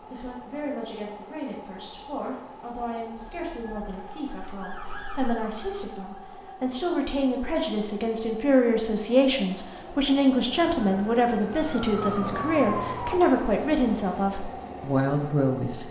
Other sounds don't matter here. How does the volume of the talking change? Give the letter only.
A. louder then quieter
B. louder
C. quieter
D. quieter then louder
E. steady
B.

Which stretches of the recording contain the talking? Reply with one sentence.
The talking can be heard from 0.0 to 15.8 s.